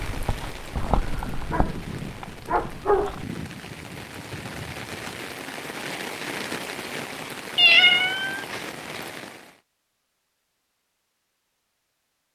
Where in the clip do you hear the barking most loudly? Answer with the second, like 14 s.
3 s.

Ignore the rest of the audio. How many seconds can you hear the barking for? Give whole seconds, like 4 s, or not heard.
3 s.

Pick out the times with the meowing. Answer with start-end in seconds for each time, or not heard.
7.5-8.6.